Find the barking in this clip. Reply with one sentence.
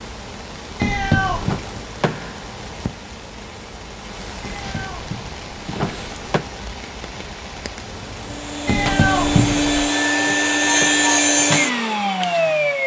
The barking can't be heard in this clip.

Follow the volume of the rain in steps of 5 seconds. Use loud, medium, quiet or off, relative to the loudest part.
loud, loud, off.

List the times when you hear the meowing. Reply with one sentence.
The meowing can be heard from 0.8 to 1.6 s, from 4.4 to 6.2 s and from 8.7 to 9.9 s.